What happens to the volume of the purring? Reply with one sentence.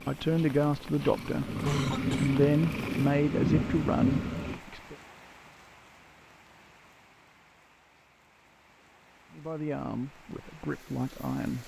The loudness of the purring goes up.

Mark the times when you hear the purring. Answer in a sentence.
You can hear the purring from 0.0 to 4.6 s.